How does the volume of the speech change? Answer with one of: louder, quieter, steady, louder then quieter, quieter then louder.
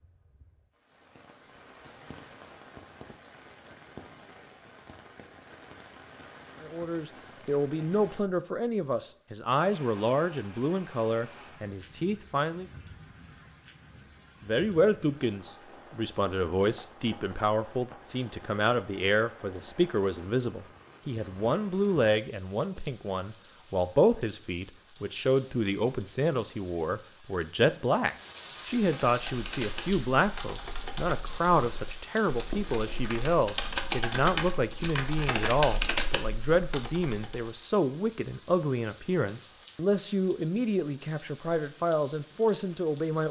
steady.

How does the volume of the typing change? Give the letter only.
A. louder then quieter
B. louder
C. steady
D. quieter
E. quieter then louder
B.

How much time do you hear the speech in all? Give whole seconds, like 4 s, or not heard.
35 s.